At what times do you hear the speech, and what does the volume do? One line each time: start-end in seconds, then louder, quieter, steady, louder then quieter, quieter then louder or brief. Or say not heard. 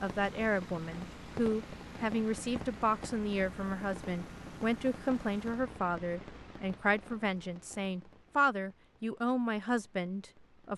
0.0-10.7 steady.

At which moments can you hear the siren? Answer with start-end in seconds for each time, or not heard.
not heard.